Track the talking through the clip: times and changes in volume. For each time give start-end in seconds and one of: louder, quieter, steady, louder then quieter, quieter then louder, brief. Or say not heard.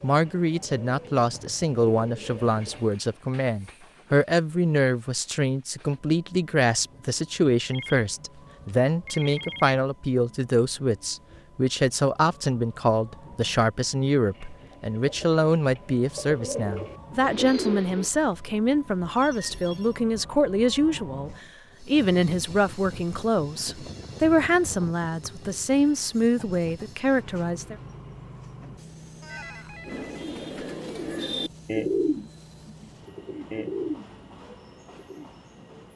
0.0-27.8 steady.